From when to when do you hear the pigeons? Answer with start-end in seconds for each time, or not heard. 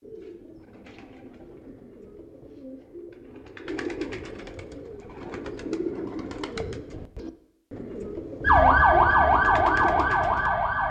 0.0-10.5.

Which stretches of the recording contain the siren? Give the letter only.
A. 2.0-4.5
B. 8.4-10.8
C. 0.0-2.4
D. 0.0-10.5
B.